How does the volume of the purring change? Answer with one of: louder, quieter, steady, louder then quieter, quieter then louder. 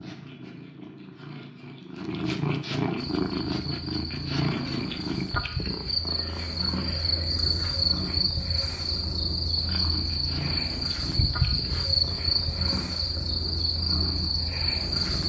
quieter.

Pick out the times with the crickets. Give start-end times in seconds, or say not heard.
3.0-15.2.